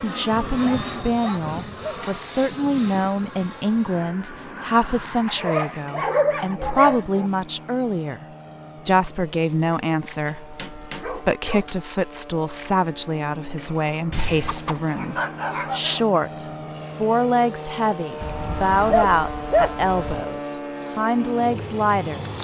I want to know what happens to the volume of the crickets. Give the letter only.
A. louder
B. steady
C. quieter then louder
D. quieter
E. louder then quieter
C.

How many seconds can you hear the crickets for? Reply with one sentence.
The crickets can be heard for 22 seconds in total.